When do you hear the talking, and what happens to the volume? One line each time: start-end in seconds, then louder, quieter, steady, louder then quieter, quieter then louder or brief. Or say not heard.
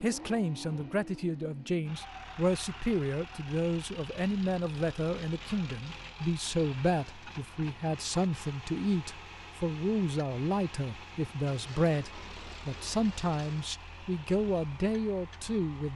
0.0-15.9 steady.